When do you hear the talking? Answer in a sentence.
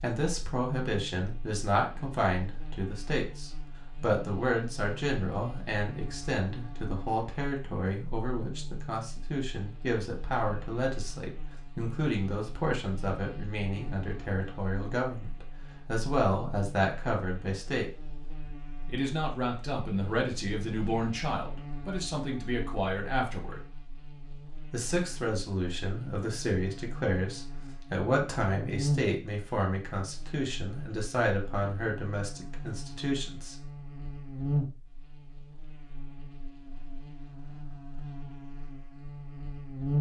The talking can be heard from 0.0 to 17.9 s, from 18.9 to 23.6 s and from 24.7 to 33.7 s.